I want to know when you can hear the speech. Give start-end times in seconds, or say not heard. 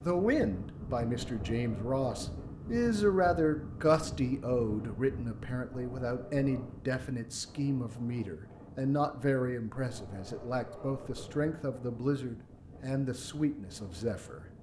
0.0-14.4.